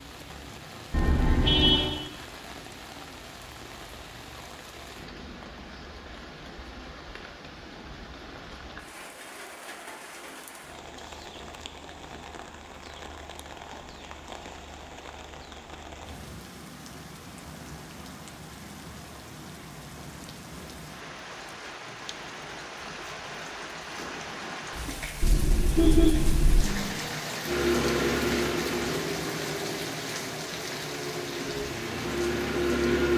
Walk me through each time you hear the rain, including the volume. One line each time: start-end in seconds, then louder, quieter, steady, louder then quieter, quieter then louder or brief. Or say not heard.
0.0-33.1 louder.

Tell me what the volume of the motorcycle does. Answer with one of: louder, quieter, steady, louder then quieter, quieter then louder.
quieter then louder.